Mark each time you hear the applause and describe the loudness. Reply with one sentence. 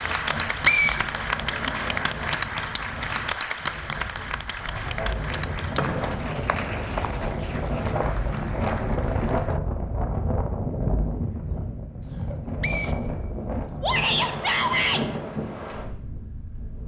The applause can be heard from 0.0 to 9.6 s, getting quieter.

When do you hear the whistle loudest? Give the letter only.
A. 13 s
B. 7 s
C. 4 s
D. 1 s
D.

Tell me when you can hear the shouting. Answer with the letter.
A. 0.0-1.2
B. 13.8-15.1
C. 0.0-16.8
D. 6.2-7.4
B.